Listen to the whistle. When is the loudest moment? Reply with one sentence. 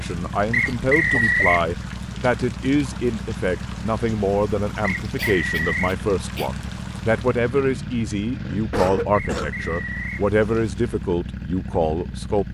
The loudest moment of the whistle is at 1 second.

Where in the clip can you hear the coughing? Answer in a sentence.
You can hear the coughing from 0.7 to 1.4 s, from 5.2 to 6.5 s and from 8.7 to 9.7 s.